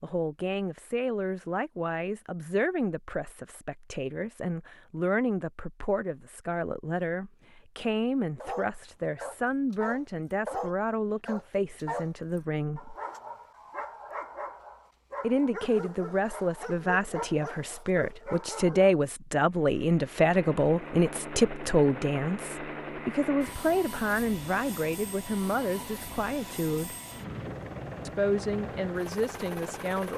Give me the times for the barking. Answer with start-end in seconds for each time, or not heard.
8.4-18.9.